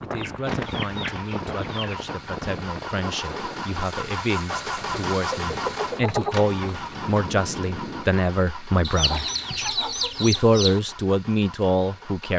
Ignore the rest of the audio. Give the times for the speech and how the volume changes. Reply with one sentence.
The speech can be heard from 0.0 to 12.3 s, getting louder.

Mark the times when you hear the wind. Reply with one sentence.
You can hear the wind from 0.0 to 8.1 s.